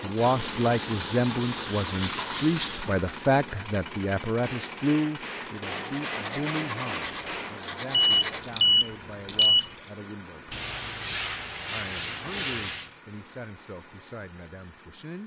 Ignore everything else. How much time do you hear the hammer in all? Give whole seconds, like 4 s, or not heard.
3 s.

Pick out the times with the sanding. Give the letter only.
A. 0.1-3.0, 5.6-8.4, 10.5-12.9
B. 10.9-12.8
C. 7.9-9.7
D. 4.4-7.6
A.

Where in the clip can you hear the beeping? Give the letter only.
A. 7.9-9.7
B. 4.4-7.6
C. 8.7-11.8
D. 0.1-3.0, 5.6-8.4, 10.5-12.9
A.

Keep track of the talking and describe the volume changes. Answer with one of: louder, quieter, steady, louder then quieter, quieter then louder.
quieter.